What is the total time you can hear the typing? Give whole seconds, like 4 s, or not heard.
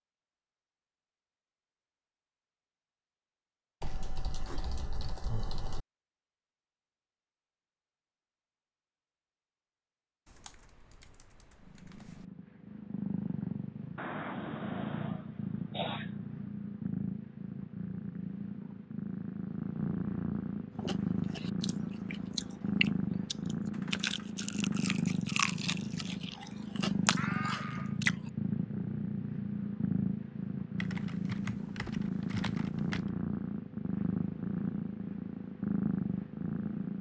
7 s.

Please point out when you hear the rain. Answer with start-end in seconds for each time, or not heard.
not heard.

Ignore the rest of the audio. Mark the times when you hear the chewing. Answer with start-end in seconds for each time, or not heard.
20.8-28.1.